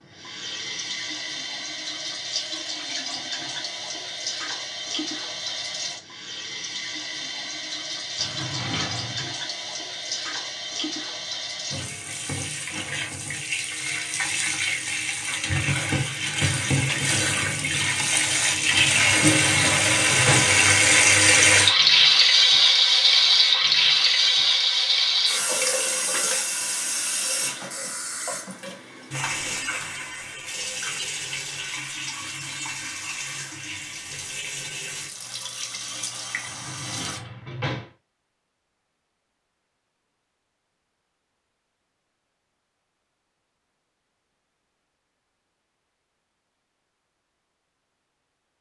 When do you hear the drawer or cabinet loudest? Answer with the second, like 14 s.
20 s.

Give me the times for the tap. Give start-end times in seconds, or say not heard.
0.0-37.2.